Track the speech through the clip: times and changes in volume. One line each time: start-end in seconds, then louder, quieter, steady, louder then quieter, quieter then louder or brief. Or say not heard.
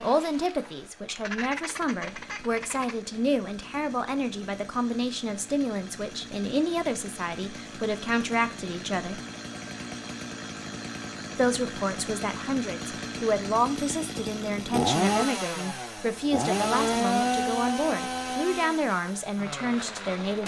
0.0-9.2 steady
11.3-20.4 steady.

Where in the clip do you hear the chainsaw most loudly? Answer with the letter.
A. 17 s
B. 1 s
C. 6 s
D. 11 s
A.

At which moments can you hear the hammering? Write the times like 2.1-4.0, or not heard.
not heard.